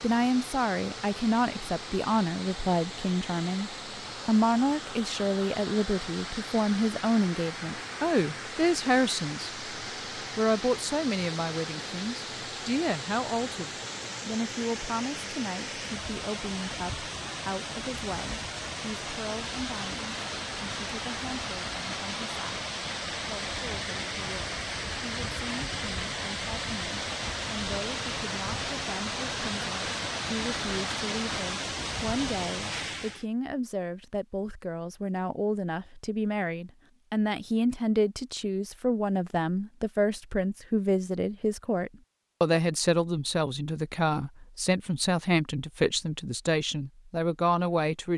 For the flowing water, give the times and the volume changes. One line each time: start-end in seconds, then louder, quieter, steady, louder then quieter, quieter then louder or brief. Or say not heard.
0.0-33.2 louder.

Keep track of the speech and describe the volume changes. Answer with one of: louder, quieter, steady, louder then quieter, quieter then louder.
quieter then louder.